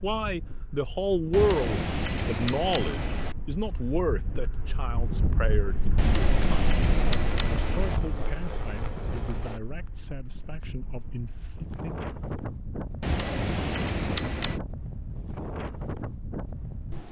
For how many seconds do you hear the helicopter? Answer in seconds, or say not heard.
3 s.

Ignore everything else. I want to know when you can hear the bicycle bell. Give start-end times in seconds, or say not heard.
1.3-3.4, 6.0-8.0, 13.0-14.6.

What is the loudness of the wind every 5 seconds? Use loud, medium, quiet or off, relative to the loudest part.
medium, loud, loud, loud.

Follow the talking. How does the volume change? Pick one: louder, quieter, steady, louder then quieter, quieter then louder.
quieter.